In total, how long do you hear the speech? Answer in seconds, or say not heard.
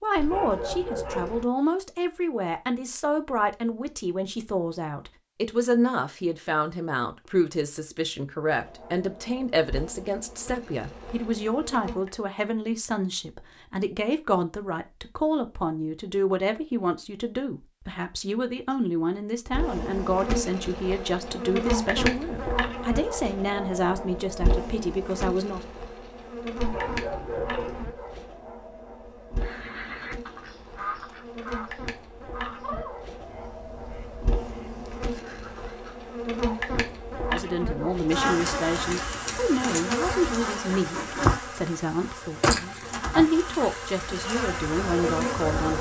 34 s.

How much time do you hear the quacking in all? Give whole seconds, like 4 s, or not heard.
7 s.